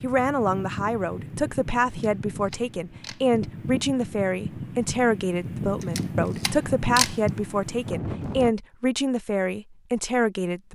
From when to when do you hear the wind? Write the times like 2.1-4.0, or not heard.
0.0-8.6.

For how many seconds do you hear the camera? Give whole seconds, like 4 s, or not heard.
3 s.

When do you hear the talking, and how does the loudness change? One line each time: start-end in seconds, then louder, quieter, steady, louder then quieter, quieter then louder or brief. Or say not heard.
0.0-10.6 steady.